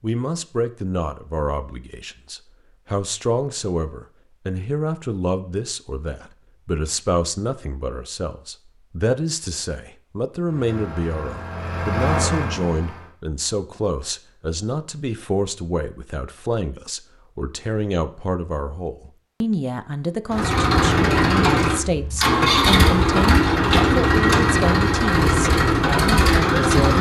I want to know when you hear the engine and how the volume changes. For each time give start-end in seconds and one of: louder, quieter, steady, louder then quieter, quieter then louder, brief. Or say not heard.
10.4-13.2 brief
20.3-26.9 steady.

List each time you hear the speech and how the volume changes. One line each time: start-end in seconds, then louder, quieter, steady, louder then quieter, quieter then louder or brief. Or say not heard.
0.0-26.9 steady.